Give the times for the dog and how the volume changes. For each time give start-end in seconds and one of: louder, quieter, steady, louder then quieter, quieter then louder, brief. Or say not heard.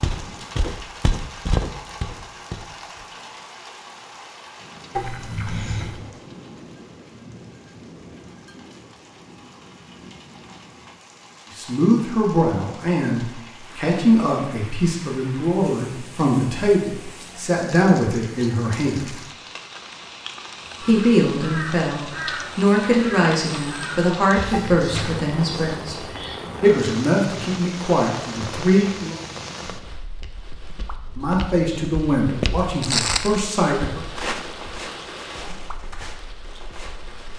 not heard.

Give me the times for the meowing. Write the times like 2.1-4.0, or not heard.
5.0-6.0, 24.5-25.2.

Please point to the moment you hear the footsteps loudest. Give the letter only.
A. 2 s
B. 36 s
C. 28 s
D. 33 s
D.